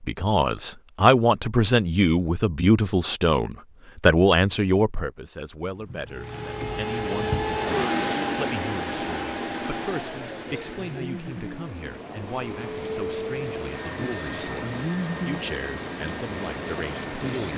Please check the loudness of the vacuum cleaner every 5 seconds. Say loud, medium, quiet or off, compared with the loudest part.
off, loud, medium, medium.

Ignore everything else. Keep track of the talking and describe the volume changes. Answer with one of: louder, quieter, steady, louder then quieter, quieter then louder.
quieter.